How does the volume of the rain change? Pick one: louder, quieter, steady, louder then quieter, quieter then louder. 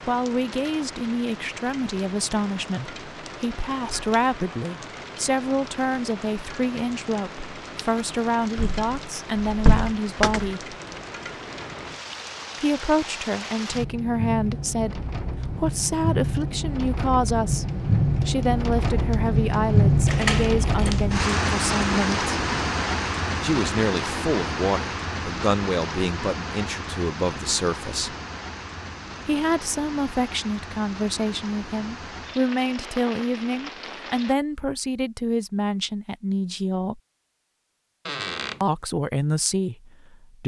louder then quieter.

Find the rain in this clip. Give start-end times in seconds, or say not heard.
0.0-34.4.